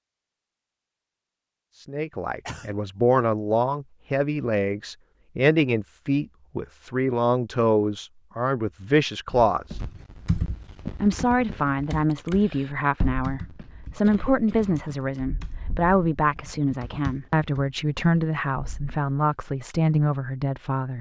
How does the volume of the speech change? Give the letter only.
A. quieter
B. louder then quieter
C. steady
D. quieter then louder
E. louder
C.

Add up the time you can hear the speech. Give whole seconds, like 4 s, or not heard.
18 s.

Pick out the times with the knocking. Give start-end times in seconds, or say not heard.
not heard.